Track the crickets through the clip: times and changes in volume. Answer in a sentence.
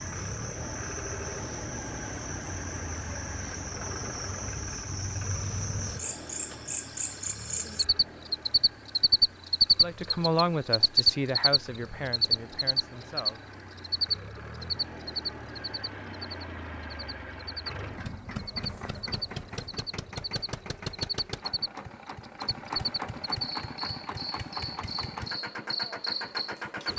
You can hear the crickets from 0.0 to 26.9 s, getting louder then quieter.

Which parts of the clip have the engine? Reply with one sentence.
You can hear the engine from 0.0 to 26.9 s.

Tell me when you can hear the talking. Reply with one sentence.
The talking can be heard from 9.8 to 13.4 s.